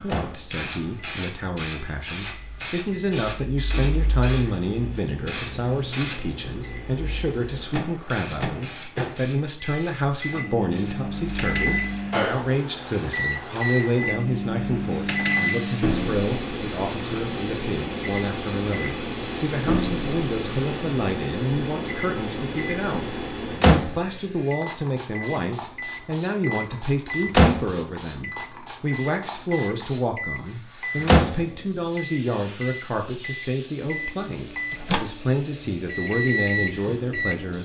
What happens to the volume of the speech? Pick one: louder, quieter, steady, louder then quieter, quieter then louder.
steady.